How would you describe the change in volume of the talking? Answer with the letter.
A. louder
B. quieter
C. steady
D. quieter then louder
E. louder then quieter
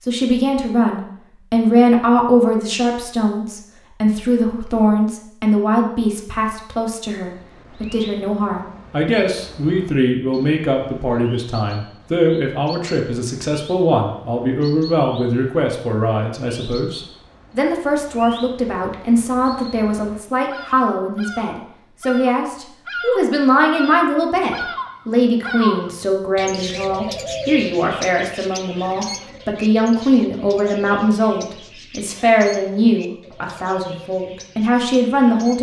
C.